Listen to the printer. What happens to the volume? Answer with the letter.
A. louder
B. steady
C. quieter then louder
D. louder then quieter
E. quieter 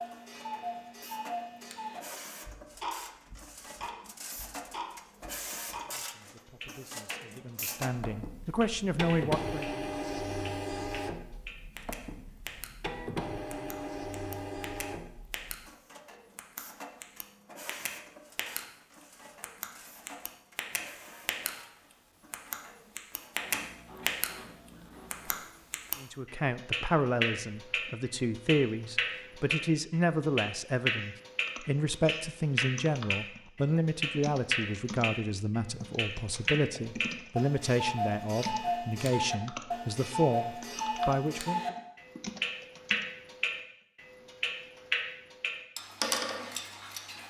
D.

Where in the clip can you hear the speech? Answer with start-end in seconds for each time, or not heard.
5.8-9.7, 26.0-41.8.